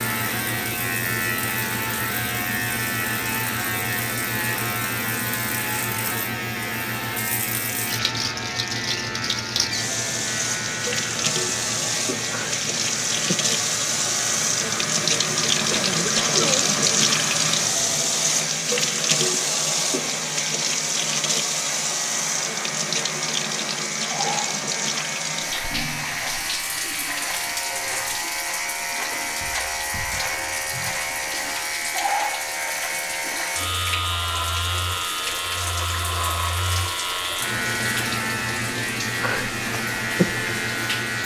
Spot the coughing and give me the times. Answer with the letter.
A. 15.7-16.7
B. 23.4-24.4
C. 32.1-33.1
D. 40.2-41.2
A.